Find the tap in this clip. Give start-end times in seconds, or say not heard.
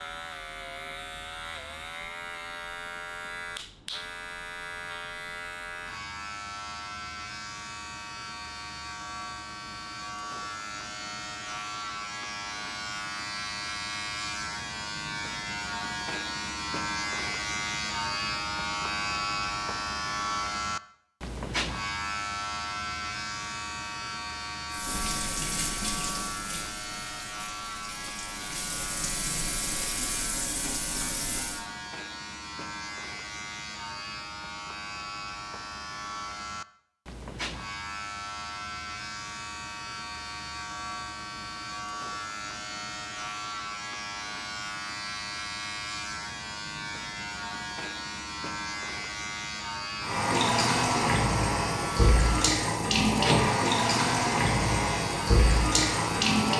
24.7-31.6, 50.0-56.5.